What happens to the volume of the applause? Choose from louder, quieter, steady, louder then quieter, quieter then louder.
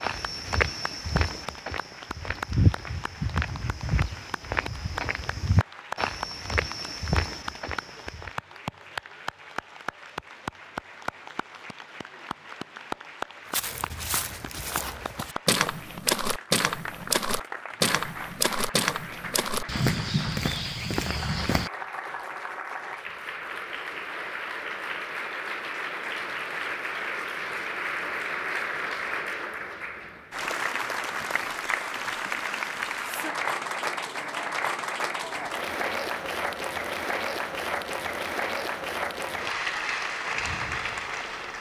louder.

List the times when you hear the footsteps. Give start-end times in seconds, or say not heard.
0.0-8.3, 13.5-21.7.